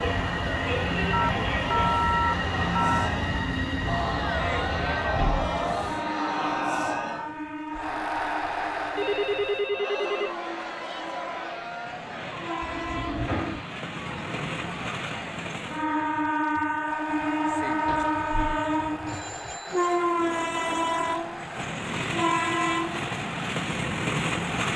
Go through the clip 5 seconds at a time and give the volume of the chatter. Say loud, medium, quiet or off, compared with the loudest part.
loud, loud, medium, medium, medium.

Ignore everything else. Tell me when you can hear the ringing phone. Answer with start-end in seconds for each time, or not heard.
1.1-3.1, 8.9-10.3, 19.1-20.1.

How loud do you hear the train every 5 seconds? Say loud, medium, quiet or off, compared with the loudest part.
loud, medium, medium, loud, loud.